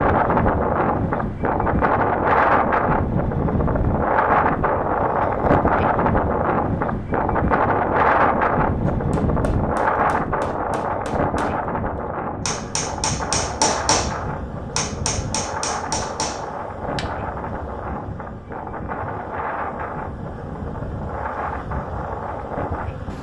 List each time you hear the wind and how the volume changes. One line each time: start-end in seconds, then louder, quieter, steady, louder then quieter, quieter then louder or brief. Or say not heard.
0.0-23.1 quieter.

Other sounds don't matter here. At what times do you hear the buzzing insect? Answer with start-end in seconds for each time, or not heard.
12.4-23.1.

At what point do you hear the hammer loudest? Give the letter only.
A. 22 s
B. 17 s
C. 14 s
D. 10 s
C.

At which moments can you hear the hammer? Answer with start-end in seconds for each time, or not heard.
8.8-17.2.